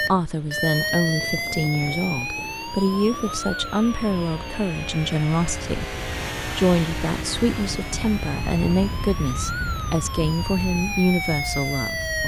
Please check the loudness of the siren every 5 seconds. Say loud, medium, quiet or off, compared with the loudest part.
loud, medium, loud.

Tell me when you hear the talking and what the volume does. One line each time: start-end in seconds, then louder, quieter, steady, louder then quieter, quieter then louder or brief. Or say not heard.
0.0-12.2 steady.